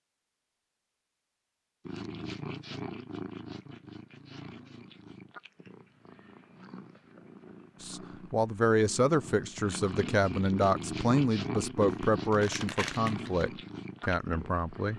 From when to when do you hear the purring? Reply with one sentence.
The purring can be heard from 1.9 to 14.9 s.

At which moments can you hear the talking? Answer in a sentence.
You can hear the talking from 7.8 to 14.9 s.